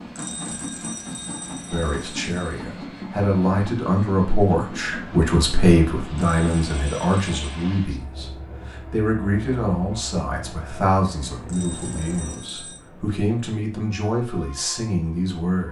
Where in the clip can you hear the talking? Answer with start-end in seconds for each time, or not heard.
1.7-15.6.